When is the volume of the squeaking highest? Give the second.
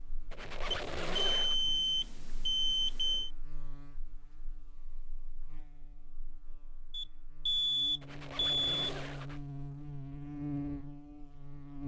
1 s.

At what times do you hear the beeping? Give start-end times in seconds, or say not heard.
0.7-3.3, 6.9-8.9.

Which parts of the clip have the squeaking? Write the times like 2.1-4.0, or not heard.
0.3-1.6, 8.0-9.4.